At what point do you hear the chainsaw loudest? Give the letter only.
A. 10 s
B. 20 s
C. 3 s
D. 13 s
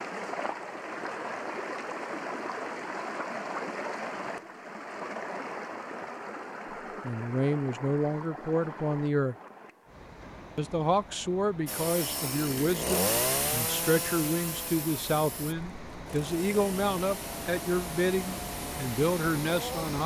D.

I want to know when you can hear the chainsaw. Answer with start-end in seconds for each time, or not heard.
11.7-19.8.